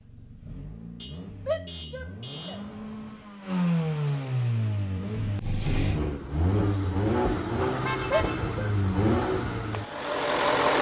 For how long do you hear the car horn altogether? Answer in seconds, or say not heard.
3 s.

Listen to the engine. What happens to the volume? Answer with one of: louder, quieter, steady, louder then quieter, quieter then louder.
louder.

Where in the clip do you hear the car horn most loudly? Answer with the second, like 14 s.
8 s.